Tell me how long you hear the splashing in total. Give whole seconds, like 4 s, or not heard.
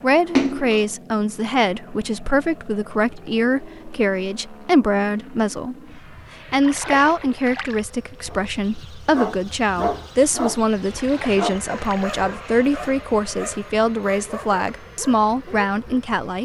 3 s.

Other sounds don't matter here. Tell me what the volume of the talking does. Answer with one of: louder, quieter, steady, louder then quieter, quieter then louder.
steady.